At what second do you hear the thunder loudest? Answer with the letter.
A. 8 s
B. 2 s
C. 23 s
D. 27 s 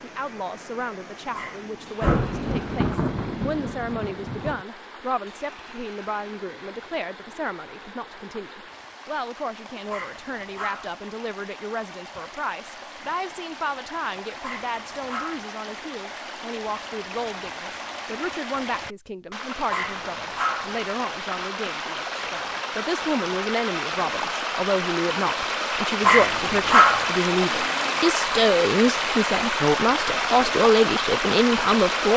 B.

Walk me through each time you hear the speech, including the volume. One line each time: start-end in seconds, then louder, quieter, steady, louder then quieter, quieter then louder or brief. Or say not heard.
0.0-32.1 louder.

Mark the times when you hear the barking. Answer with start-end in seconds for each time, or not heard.
1.3-2.3, 9.9-10.9, 14.4-15.5, 19.7-20.8, 26.1-27.1.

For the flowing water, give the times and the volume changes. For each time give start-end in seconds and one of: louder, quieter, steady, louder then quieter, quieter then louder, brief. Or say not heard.
0.0-32.1 louder.